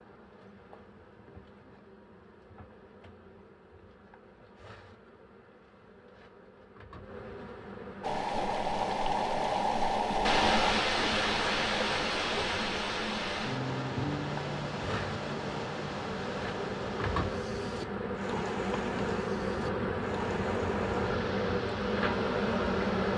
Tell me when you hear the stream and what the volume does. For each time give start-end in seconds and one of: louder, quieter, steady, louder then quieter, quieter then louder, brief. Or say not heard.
8.0-23.1 quieter.